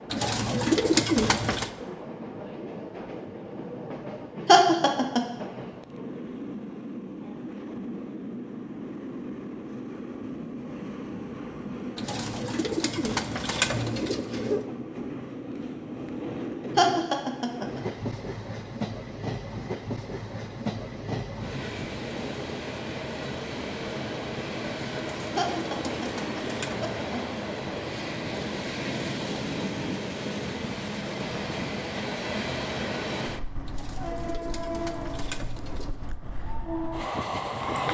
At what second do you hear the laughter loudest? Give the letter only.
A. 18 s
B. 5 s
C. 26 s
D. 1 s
B.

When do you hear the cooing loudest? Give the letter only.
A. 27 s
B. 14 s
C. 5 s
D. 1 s
D.